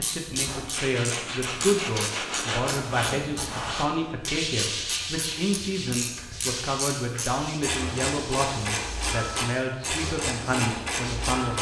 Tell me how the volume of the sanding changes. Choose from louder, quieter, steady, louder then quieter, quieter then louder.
quieter.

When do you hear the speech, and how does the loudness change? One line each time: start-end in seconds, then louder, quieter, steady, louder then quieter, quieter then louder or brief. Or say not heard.
0.0-11.5 steady.